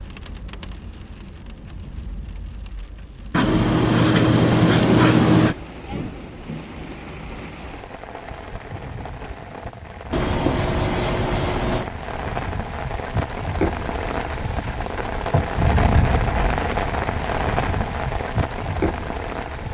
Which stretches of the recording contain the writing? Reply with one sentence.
You can hear the writing from 3.3 to 5.5 s and from 10.1 to 11.9 s.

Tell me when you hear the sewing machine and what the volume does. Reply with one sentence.
You can't hear the sewing machine here.